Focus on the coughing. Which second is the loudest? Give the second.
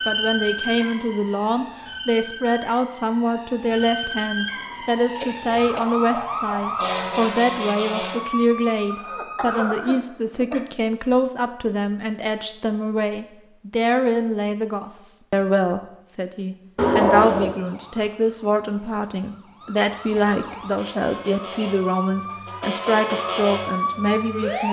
17 s.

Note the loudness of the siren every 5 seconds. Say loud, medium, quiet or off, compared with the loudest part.
loud, loud, off, quiet, loud.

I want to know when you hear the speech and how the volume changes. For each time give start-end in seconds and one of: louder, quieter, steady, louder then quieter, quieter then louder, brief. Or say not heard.
0.1-24.6 steady.